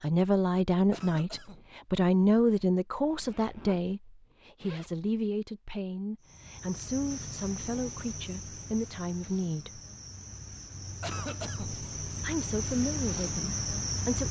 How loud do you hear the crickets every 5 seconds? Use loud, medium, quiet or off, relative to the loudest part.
off, medium, loud.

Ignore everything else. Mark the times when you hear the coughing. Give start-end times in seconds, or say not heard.
0.9-1.6, 11.0-11.8.